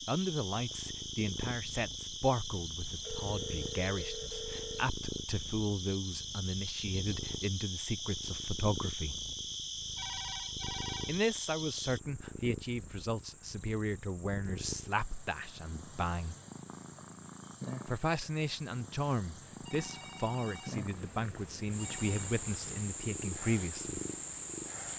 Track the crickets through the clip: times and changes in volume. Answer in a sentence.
The crickets can be heard from 0.0 to 24.9 s, getting quieter then louder.